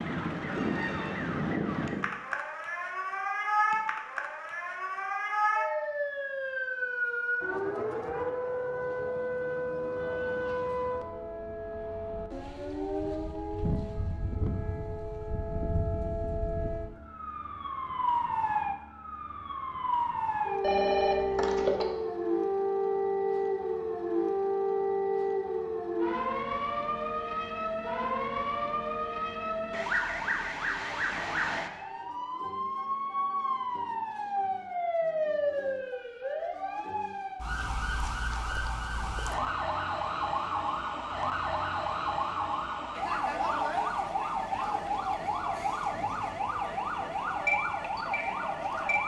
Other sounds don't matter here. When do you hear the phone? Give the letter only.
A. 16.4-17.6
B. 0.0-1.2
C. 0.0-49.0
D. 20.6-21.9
D.